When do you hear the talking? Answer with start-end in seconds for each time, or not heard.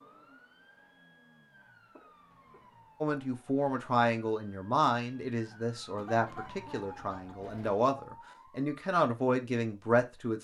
3.0-10.3.